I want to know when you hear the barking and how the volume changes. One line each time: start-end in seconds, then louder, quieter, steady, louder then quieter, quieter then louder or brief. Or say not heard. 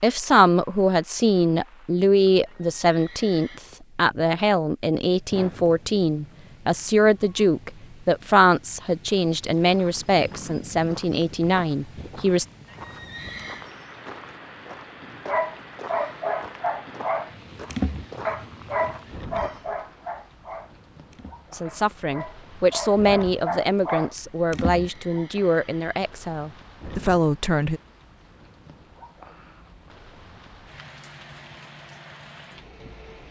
15.2-24.9 quieter then louder.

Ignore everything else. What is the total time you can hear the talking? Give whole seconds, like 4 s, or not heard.
19 s.